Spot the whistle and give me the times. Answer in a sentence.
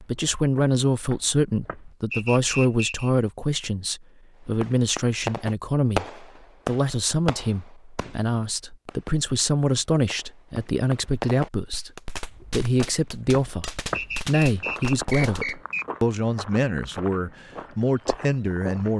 The whistle can be heard from 2.1 to 3.1 s and from 13.9 to 15.8 s.